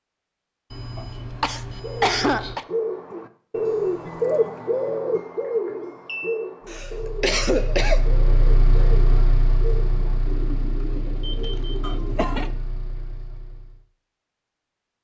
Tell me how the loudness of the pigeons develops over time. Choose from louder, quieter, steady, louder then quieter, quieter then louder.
quieter.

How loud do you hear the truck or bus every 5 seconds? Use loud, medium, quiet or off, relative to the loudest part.
off, loud, medium.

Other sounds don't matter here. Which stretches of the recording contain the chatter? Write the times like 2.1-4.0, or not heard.
not heard.